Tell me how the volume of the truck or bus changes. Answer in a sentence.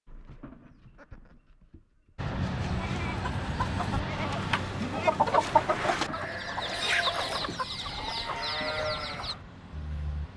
The loudness of the truck or bus goes down.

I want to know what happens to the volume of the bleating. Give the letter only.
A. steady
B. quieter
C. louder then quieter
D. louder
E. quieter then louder
D.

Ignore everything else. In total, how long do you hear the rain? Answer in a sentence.
The rain can't be heard in this clip.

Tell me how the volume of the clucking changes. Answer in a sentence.
The volume of the clucking goes up, then down.